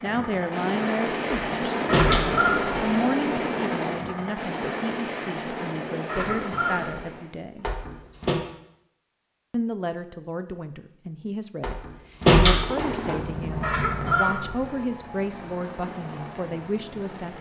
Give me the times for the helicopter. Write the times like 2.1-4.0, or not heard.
0.0-7.3, 12.4-17.3.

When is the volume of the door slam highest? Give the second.
12 s.